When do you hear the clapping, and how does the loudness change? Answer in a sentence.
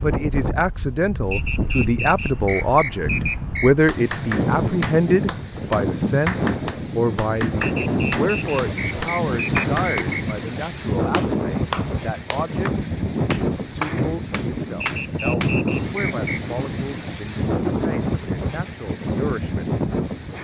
You can hear the clapping from 3.9 to 15.6 s, at a steady volume.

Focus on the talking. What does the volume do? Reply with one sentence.
The volume of the talking goes down.